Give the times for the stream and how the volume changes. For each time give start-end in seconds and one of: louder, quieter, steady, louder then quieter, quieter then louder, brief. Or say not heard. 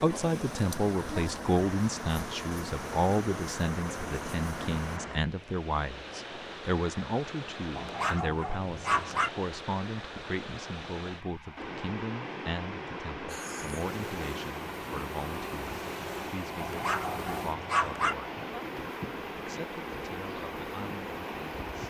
0.0-21.8 steady.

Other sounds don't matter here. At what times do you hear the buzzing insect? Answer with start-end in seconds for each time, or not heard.
0.0-5.0, 13.2-21.8.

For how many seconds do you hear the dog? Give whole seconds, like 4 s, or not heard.
3 s.